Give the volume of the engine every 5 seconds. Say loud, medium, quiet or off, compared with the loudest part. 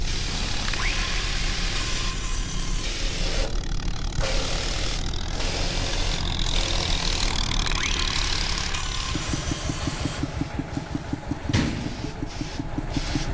medium, loud, loud.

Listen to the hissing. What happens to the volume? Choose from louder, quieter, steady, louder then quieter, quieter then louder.
quieter.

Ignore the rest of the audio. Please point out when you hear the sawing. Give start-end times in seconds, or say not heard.
0.2-2.9, 7.2-10.2.